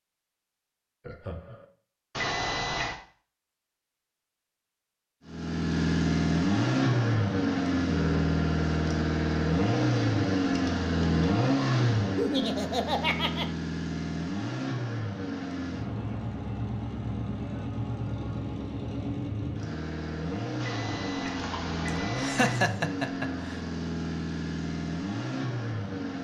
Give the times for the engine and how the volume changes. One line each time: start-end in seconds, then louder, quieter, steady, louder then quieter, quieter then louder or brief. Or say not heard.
5.2-26.1 quieter.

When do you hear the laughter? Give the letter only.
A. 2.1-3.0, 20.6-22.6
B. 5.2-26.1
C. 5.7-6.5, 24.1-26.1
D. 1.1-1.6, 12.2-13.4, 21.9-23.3
D.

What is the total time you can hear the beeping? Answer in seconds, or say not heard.
3 s.